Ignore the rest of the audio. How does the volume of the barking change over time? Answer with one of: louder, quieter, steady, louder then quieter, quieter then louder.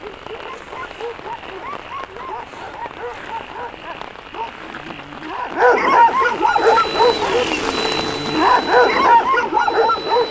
louder.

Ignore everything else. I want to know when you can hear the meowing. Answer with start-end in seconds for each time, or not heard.
not heard.